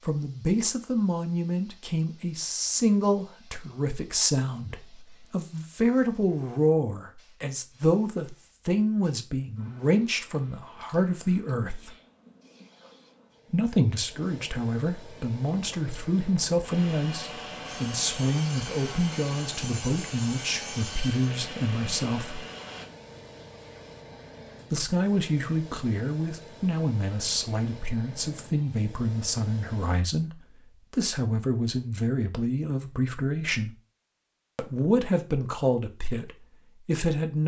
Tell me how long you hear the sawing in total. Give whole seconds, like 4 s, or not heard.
6 s.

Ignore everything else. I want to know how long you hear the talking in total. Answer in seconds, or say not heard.
33 s.